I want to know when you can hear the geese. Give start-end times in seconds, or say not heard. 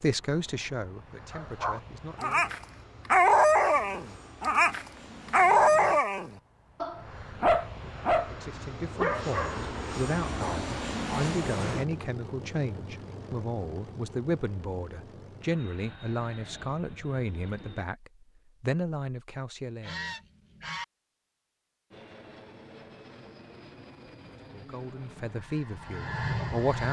19.8-20.9.